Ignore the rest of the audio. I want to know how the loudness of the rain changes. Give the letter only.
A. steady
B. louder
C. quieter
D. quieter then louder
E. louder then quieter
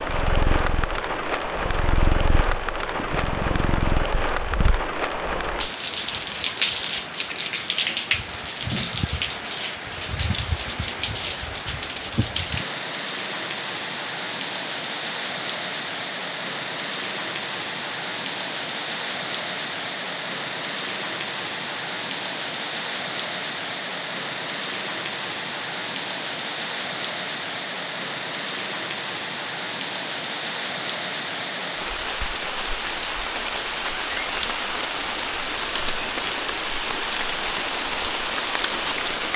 A.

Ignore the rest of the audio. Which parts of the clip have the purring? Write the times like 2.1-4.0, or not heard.
0.0-4.8.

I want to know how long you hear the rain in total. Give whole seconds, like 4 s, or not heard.
39 s.